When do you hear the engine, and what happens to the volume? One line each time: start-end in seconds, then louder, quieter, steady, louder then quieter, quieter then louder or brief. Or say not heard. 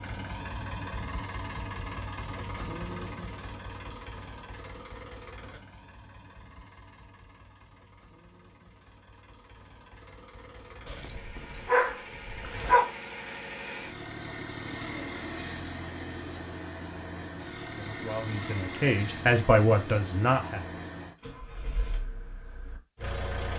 0.0-23.5 quieter then louder.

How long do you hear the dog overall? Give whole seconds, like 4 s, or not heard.
2 s.